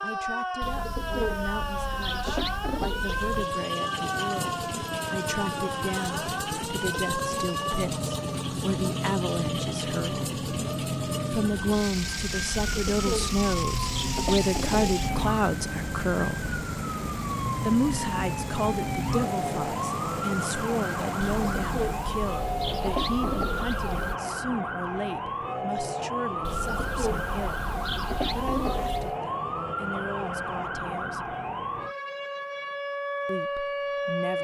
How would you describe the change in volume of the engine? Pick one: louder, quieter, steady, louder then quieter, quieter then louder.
steady.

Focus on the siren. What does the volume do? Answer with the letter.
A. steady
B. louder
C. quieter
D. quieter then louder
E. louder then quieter
A.